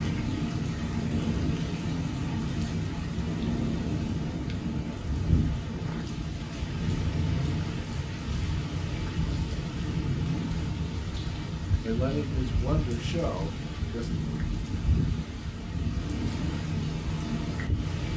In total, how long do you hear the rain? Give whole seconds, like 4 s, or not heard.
18 s.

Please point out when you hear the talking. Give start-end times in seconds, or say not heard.
11.8-14.1.